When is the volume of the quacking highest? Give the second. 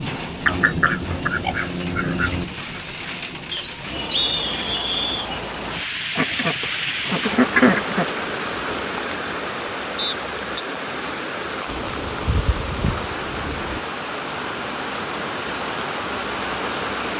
8 s.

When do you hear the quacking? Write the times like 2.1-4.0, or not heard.
0.5-2.5, 6.2-8.1, 11.7-13.8.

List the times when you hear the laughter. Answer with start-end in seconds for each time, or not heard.
not heard.